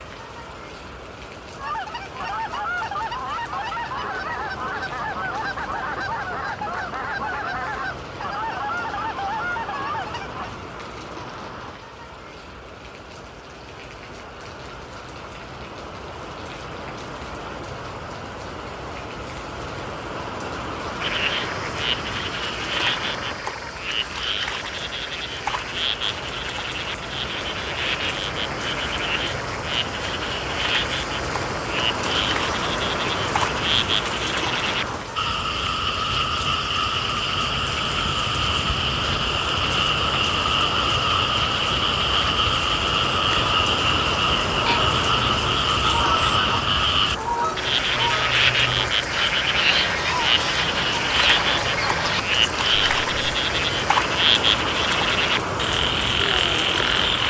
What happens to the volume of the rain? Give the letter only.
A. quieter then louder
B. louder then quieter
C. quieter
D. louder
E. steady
D.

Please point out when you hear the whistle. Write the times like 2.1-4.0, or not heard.
not heard.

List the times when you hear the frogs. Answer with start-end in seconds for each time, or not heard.
21.0-57.2.